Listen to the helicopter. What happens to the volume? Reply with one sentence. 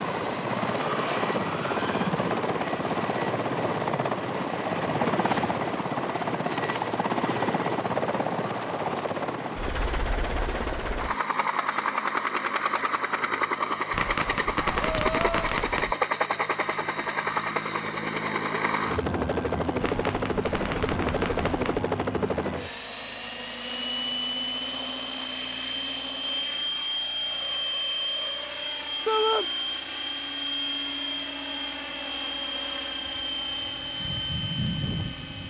The volume of the helicopter stays about the same.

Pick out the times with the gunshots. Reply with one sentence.
You can hear the gunshots from 13.9 to 15.9 s and from 19.8 to 21.8 s.